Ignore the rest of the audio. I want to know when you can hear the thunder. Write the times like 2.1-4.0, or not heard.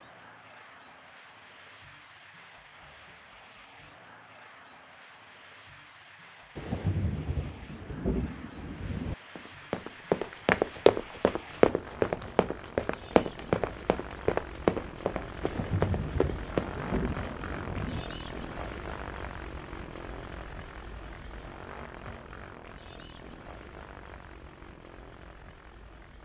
6.5-9.2, 15.4-18.1.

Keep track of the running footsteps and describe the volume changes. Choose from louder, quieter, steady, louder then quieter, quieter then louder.
quieter.